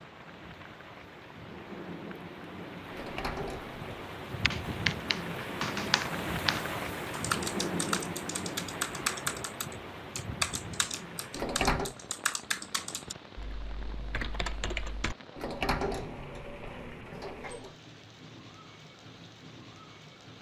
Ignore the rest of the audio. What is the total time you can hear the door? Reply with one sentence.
You can hear the door for 4 seconds altogether.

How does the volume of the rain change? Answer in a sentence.
The volume of the rain goes up, then down.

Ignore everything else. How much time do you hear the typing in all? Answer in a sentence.
The typing can be heard for 11 seconds in total.